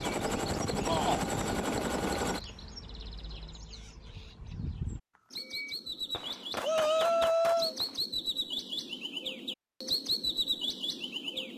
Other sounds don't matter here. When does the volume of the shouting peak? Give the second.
7 s.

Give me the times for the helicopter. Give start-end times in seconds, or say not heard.
0.0-2.4.